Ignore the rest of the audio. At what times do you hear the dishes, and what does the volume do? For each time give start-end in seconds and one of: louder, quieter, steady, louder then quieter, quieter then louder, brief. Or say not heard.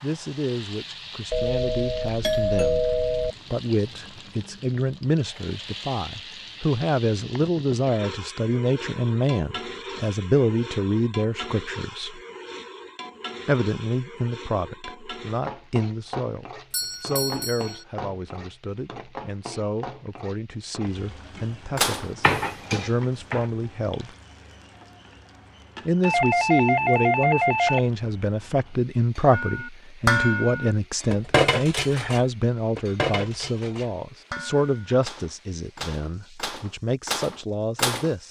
21.8-23.5 brief
29.3-38.1 quieter then louder.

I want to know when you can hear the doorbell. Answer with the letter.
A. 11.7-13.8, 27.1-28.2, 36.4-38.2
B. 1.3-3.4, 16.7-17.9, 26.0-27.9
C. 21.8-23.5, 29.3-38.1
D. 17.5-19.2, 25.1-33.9
B.